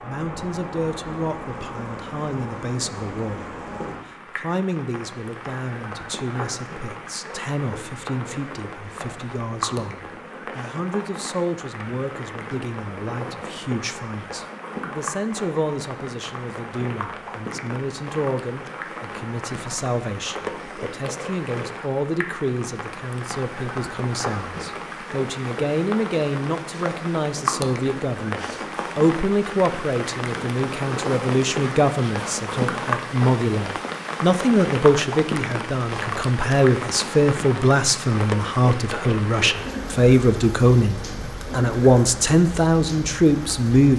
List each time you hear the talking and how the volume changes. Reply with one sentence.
The talking can be heard from 0.0 to 43.9 s, getting louder.